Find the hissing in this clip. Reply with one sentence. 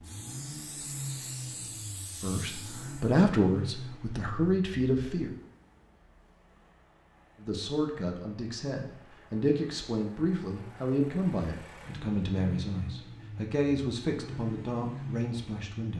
You can hear the hissing from 0.0 to 3.1 s.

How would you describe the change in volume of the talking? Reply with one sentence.
The volume of the talking goes down.